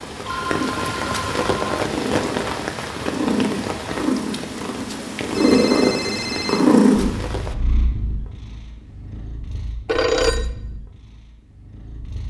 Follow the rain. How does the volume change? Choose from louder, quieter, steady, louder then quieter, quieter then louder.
quieter.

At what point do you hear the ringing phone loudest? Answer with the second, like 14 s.
10 s.